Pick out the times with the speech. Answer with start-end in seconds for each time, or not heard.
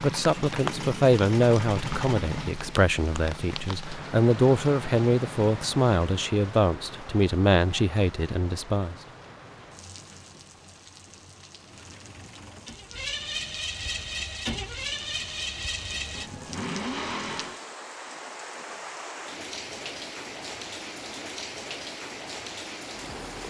0.0-8.9.